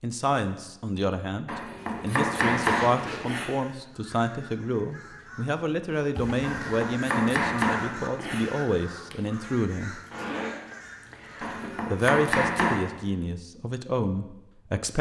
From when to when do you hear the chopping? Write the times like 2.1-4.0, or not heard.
1.4-3.5, 6.4-8.4, 11.4-12.9.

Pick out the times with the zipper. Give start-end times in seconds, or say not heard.
1.9-3.2, 6.2-6.8, 10.1-11.7.